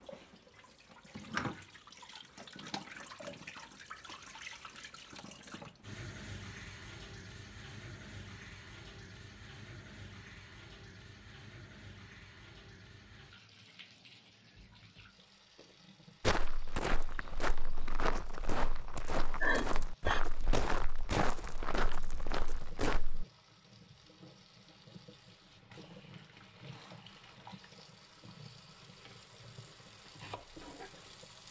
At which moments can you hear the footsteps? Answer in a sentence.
You can hear the footsteps from 16.2 to 23.2 s.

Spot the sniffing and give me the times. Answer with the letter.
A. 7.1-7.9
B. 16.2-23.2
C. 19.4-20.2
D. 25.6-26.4
C.